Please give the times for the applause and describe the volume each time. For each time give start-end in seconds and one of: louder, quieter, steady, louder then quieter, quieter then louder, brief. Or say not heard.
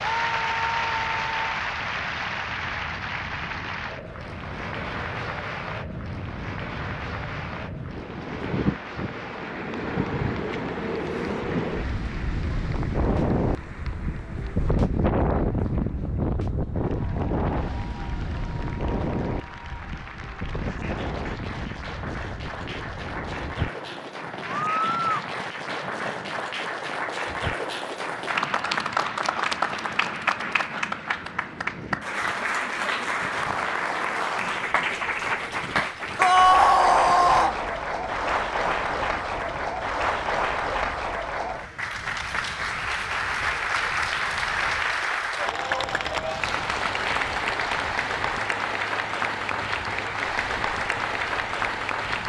0.0-52.2 quieter then louder.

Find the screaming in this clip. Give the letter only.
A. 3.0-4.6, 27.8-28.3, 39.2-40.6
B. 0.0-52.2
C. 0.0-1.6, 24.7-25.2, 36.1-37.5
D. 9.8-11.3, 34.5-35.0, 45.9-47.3
C.